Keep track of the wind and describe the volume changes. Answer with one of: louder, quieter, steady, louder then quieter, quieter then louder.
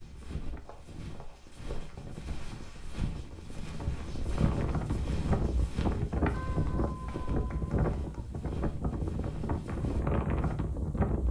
louder.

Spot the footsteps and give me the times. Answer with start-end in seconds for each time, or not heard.
0.0-10.6.